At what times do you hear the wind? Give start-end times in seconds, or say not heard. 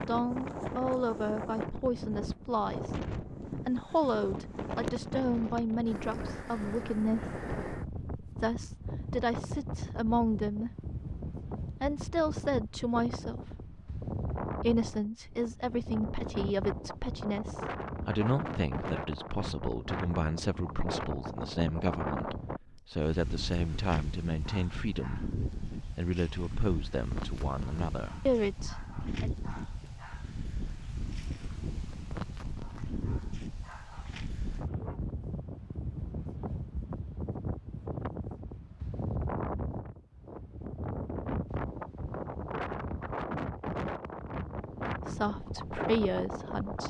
0.0-46.8.